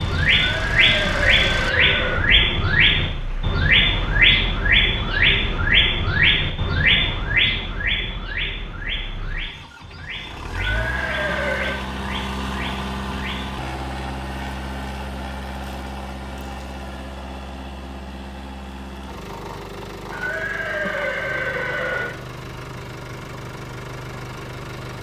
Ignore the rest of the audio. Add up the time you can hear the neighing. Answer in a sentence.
The neighing can be heard for 5 seconds in total.